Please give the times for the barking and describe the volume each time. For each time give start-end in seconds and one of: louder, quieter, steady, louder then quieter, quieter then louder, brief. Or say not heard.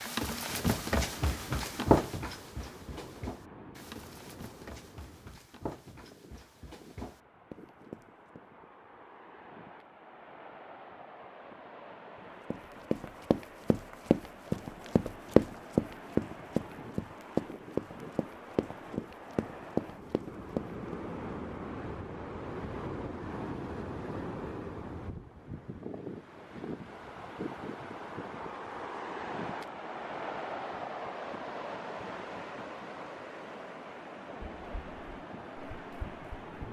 not heard.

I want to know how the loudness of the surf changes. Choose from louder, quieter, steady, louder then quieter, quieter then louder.
louder.